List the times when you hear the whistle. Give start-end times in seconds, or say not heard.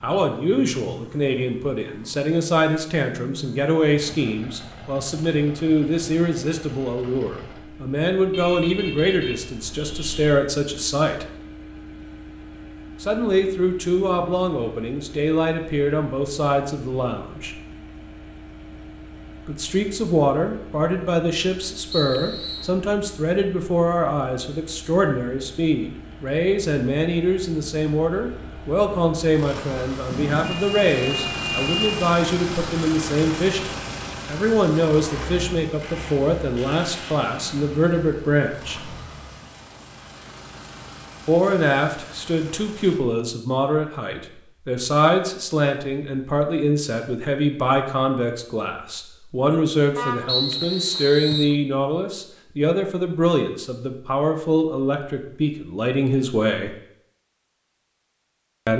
21.9-22.8, 50.2-51.5.